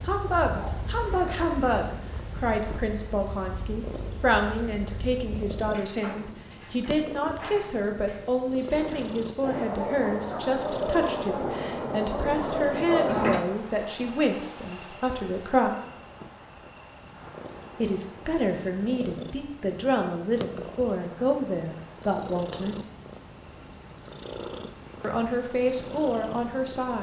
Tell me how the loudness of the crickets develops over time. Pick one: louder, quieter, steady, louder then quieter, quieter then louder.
louder then quieter.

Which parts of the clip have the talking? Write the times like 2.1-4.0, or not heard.
0.1-15.7, 17.8-22.8, 25.0-26.9.